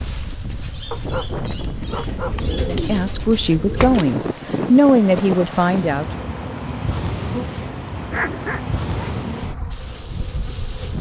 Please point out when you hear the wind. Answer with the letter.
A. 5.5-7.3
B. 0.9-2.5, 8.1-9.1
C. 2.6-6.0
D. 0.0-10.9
D.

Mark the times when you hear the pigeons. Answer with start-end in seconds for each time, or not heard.
2.3-4.1.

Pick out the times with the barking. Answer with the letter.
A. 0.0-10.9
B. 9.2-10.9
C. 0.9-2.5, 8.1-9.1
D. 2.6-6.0
C.